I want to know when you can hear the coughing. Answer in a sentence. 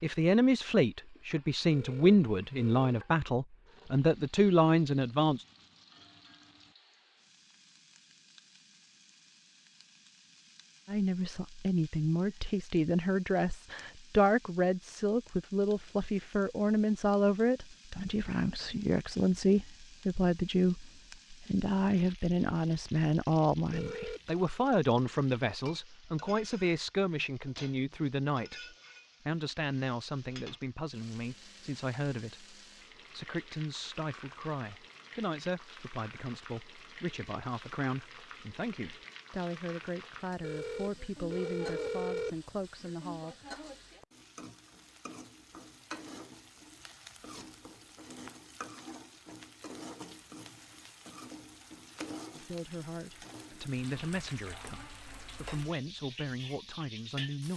You can't hear the coughing here.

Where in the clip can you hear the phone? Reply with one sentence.
You can hear the phone from 1.7 to 3.0 s, from 23.7 to 24.4 s and from 40.4 to 42.4 s.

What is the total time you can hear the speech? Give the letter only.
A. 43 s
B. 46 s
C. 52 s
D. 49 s
A.